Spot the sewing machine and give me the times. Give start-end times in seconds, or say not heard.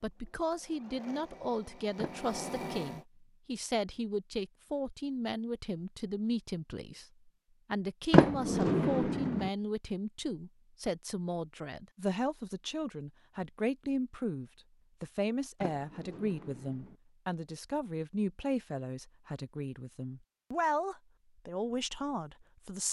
0.0-3.0.